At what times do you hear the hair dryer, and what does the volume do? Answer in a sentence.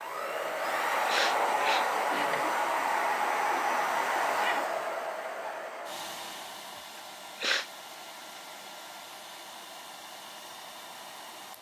You can hear the hair dryer from 0.0 to 11.5 s, getting quieter.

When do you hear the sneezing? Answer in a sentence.
The sneezing can be heard from 1.1 to 1.9 s and from 7.0 to 7.7 s.